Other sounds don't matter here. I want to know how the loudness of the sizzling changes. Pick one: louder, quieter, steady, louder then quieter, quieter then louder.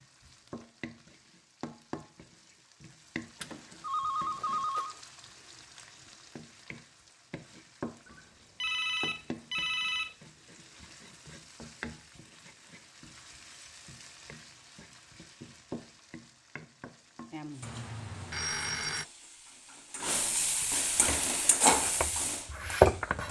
louder.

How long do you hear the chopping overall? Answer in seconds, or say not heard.
2 s.